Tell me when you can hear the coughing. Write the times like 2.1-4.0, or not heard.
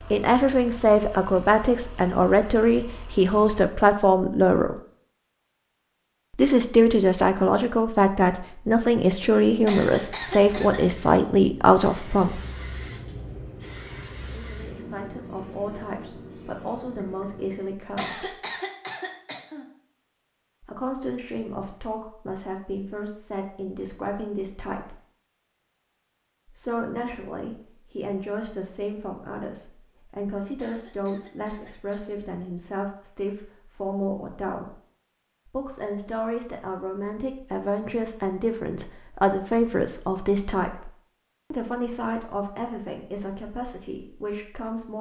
9.7-10.8, 17.9-19.6, 30.6-32.1.